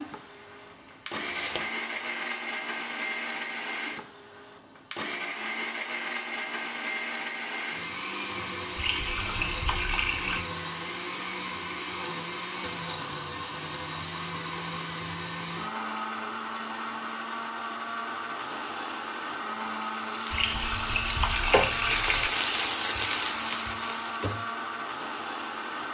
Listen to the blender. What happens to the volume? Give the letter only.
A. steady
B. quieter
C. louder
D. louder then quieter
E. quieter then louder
A.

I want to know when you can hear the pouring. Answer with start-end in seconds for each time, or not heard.
8.8-10.4, 20.3-22.3.